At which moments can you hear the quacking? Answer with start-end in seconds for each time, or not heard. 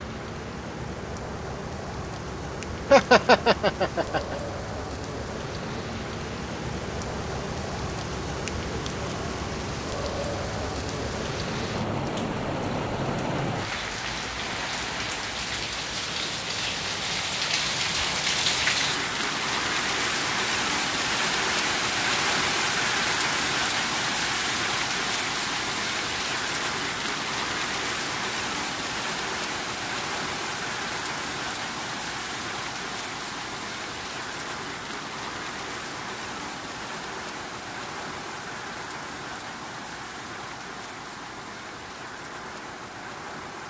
not heard.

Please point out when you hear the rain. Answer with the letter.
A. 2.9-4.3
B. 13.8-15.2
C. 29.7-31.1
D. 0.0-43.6
D.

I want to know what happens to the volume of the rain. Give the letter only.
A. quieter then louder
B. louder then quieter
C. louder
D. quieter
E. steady
B.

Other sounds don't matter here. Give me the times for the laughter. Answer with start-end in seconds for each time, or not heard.
2.9-4.3.